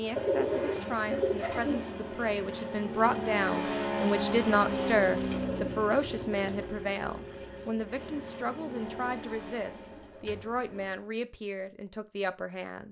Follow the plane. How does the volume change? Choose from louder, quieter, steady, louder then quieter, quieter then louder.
louder then quieter.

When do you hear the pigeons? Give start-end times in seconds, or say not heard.
0.1-1.8, 5.0-6.7, 8.8-11.1.